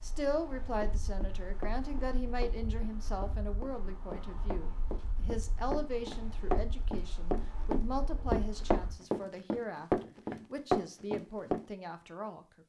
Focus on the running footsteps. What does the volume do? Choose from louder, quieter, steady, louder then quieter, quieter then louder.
louder.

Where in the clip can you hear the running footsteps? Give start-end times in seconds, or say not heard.
0.8-11.7.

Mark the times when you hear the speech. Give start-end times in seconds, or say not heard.
0.0-12.6.